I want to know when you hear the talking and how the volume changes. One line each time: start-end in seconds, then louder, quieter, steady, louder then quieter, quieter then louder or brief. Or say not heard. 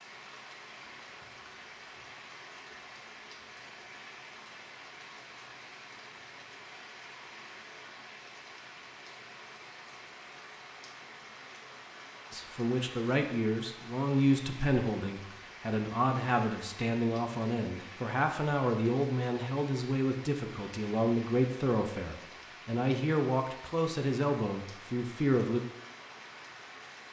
12.3-25.6 steady.